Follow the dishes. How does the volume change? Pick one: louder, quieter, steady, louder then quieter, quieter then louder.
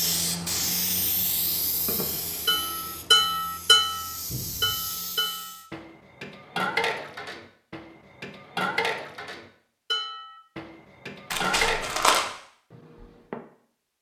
quieter.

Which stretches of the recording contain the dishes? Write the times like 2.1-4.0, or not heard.
1.8-13.4.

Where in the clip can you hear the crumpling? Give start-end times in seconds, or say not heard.
11.3-12.2.